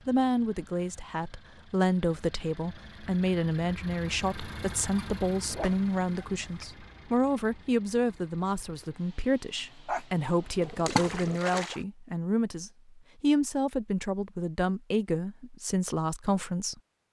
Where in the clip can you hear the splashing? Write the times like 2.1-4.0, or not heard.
10.8-11.8.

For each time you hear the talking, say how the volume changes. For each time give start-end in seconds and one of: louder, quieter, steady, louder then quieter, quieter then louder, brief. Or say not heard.
0.1-17.0 steady.